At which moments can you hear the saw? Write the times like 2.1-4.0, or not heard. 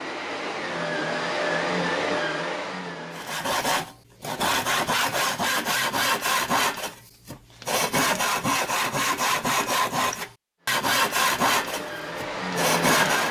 3.1-13.2.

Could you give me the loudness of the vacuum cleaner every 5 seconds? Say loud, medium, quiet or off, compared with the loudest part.
loud, off, loud.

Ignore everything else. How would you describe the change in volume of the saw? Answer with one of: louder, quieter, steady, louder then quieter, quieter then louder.
steady.